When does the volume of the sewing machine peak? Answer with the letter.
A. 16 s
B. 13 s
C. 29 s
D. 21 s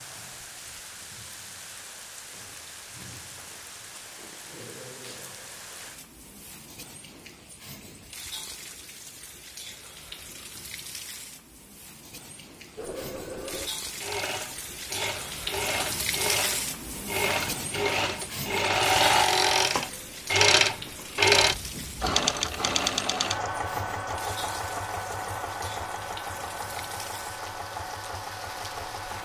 D.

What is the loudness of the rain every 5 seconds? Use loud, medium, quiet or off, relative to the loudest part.
medium, medium, medium, loud, medium, medium.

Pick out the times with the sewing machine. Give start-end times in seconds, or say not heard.
12.8-29.2.